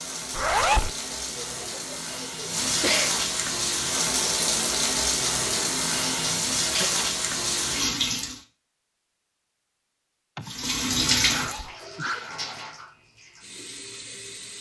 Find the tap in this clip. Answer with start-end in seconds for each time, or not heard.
0.0-8.4, 10.4-14.5.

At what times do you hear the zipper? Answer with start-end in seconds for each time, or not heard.
0.3-0.9, 11.3-11.8.